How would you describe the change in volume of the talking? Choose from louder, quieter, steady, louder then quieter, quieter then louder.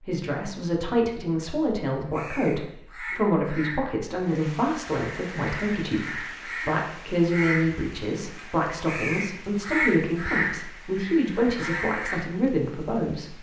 steady.